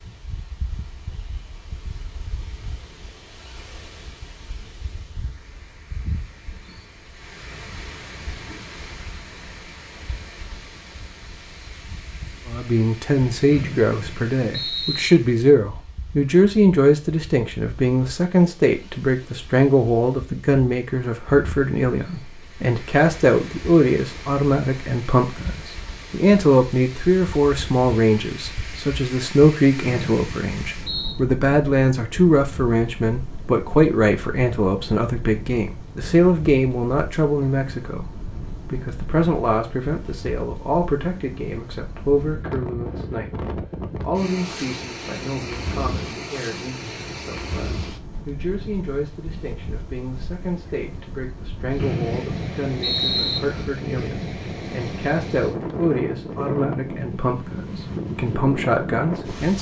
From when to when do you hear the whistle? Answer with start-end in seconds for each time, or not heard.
13.5-15.1, 29.8-31.2, 51.8-53.4.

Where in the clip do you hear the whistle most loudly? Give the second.
53 s.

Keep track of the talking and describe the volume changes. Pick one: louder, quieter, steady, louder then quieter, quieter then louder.
quieter.